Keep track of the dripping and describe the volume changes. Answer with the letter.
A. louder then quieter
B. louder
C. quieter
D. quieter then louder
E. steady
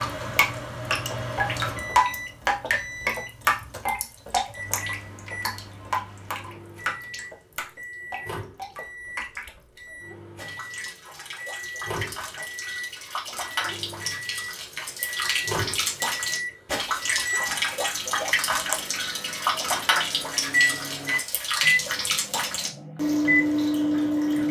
D.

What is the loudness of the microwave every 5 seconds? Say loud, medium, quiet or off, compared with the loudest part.
medium, quiet, medium, medium, loud.